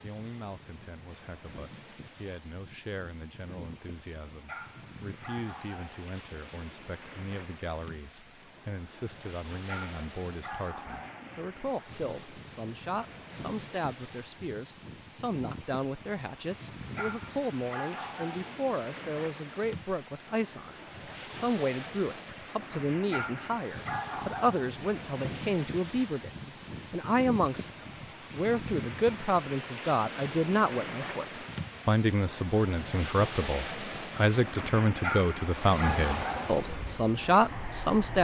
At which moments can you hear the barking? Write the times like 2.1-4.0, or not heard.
4.5-6.0, 9.7-11.3, 16.9-18.6, 23.1-24.7, 35.0-36.6.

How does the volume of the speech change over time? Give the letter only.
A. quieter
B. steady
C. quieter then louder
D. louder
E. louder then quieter
D.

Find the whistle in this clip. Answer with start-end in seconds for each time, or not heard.
not heard.